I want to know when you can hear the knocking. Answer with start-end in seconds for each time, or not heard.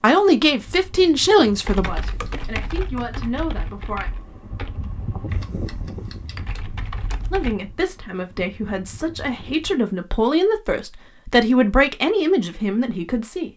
not heard.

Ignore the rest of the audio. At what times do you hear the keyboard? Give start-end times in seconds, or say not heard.
1.6-7.5.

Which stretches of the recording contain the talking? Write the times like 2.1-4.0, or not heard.
0.0-4.1, 7.3-13.5.